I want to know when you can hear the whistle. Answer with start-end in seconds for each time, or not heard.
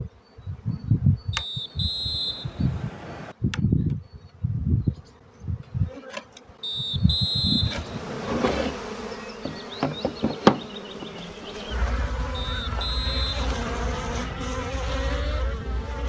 1.3-3.4, 6.6-8.7, 12.3-14.3.